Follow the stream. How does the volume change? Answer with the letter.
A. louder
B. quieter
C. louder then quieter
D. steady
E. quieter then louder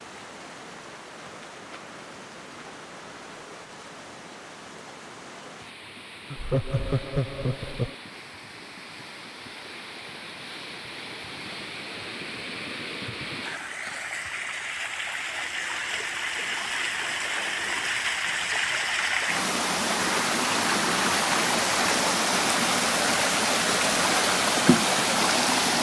A.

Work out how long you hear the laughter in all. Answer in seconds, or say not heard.
2 s.